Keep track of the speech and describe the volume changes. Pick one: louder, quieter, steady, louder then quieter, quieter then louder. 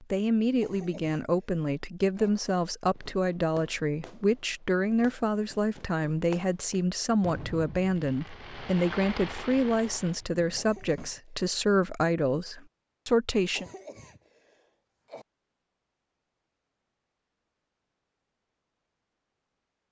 steady.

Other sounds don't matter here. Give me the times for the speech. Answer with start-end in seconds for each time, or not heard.
0.0-13.7.